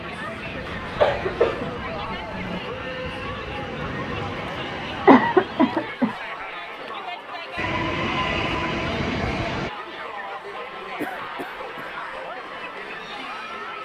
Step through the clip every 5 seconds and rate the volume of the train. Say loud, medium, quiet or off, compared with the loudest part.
medium, loud, off.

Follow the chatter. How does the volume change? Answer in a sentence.
The volume of the chatter stays about the same.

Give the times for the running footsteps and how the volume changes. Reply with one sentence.
You can't hear the running footsteps here.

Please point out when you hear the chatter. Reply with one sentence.
The chatter can be heard from 0.0 to 13.8 s.